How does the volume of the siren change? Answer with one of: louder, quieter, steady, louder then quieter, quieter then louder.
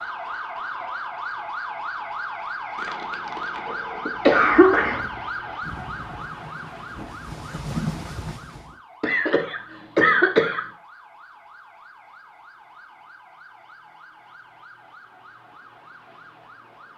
quieter.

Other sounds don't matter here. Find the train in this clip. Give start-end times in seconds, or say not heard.
4.4-8.8.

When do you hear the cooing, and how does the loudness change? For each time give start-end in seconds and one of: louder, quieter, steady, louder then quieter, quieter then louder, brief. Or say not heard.
not heard.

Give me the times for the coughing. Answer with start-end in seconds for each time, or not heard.
2.8-5.0, 9.0-10.7.